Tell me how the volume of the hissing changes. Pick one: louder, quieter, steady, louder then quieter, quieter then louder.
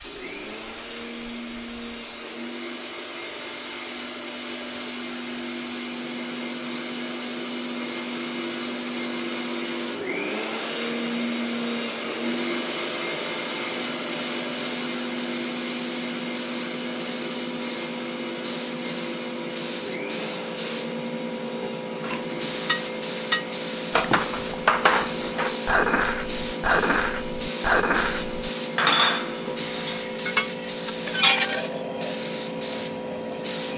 louder.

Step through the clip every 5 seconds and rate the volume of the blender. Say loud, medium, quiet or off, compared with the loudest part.
medium, loud, loud, loud, medium, medium, medium.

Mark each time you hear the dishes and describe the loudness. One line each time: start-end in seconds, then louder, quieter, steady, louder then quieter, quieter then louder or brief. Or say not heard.
22.1-31.7 steady.